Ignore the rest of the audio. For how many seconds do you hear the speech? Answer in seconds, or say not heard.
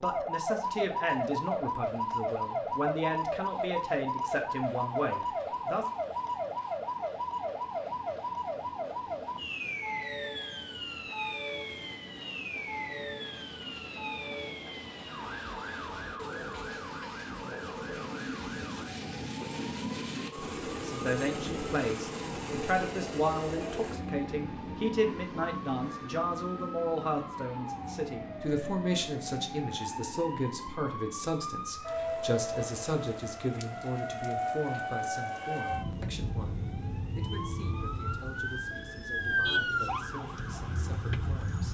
27 s.